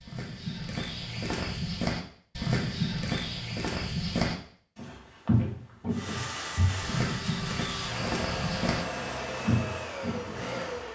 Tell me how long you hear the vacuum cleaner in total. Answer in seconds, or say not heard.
5 s.